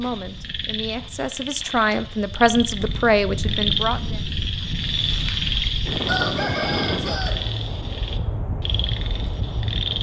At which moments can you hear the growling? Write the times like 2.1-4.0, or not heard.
not heard.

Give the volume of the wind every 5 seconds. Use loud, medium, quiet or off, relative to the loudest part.
medium, loud.